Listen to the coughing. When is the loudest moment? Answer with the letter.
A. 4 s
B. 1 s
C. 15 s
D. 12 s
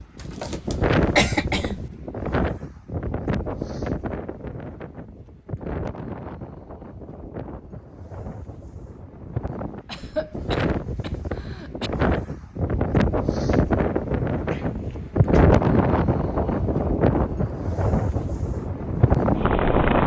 B.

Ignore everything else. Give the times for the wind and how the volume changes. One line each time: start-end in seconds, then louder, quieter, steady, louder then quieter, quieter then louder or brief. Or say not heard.
0.0-20.0 quieter then louder.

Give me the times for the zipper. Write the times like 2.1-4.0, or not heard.
not heard.